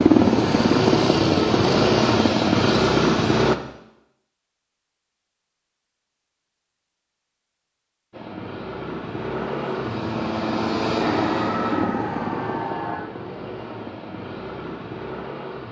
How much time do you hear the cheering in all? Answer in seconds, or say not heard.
2 s.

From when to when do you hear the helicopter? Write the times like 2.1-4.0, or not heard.
0.0-3.5, 8.1-15.6.